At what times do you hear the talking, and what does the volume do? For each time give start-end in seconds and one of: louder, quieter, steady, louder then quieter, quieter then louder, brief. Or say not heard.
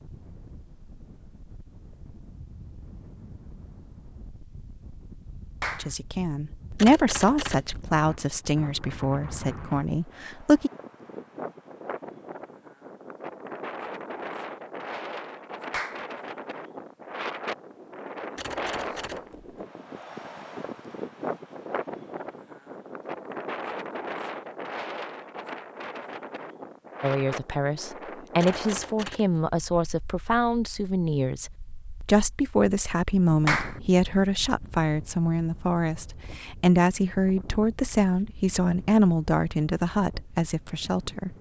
5.8-10.7 quieter
27.0-41.3 steady.